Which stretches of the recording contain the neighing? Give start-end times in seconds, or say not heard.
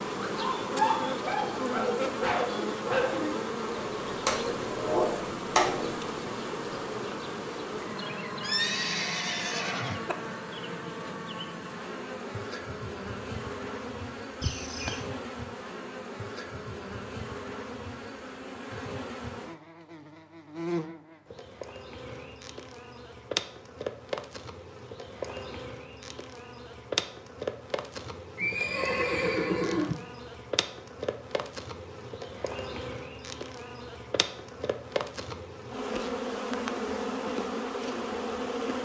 8.4-10.2, 14.4-15.1, 28.4-30.0.